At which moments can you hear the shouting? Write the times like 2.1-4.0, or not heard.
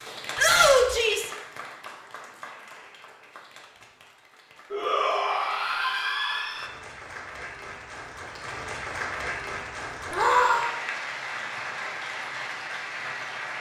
0.3-1.3, 4.7-6.7, 10.1-10.7.